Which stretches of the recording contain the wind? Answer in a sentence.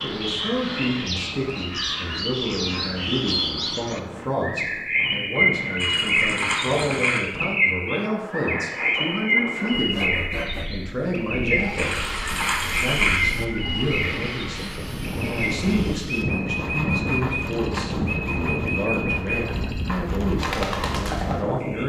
You can hear the wind from 0.0 to 21.8 s.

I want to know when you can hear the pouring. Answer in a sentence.
The pouring can be heard from 5.8 to 7.2 s and from 11.8 to 13.2 s.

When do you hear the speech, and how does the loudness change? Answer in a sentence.
The speech can be heard from 0.0 to 21.8 s, at a steady volume.